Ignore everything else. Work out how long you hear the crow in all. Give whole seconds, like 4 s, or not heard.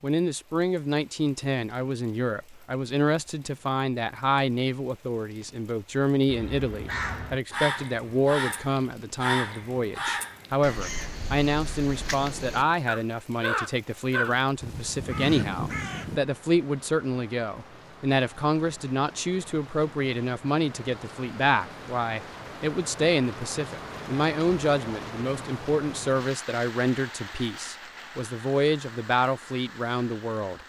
10 s.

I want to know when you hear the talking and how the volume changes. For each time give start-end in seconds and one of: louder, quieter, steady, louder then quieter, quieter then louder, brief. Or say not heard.
0.0-30.6 steady.